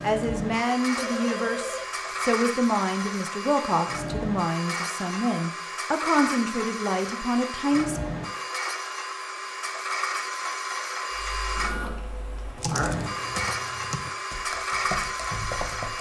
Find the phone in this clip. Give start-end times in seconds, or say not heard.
0.9-2.8.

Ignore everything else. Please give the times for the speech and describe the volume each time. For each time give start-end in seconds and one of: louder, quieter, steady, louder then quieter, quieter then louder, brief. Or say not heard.
0.0-8.0 steady.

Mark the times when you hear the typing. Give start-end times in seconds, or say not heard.
11.1-15.9.